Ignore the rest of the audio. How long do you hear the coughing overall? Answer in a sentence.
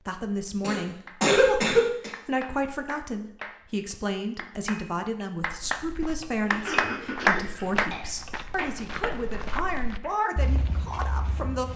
The coughing can be heard for 3 seconds in total.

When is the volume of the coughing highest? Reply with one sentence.
The loudest moment of the coughing is at 1 second.